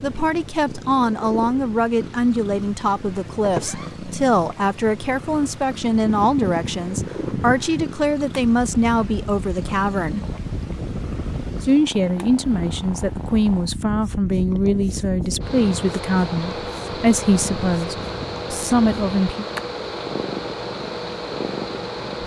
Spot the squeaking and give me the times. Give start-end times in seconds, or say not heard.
3.4-3.9.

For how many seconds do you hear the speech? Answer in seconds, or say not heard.
18 s.